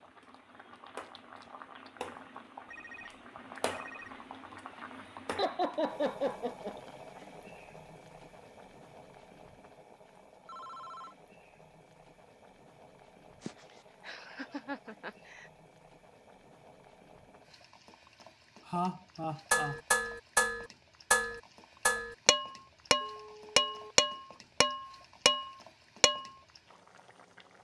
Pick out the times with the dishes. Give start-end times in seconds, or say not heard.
19.5-26.3.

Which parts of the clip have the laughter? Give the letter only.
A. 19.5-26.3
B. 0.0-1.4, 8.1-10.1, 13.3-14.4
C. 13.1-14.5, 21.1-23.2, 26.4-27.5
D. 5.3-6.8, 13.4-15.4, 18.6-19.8
D.